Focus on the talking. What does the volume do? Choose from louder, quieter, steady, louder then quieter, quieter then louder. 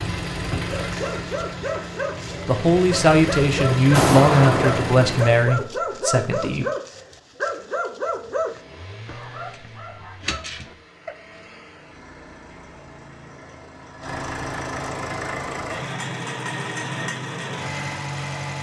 quieter.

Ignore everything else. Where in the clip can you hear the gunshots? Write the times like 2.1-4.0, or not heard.
3.9-5.3.